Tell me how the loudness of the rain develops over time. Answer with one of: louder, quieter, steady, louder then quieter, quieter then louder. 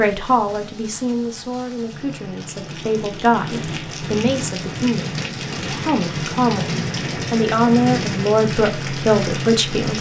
louder.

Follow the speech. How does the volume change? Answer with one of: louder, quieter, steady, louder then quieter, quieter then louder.
louder.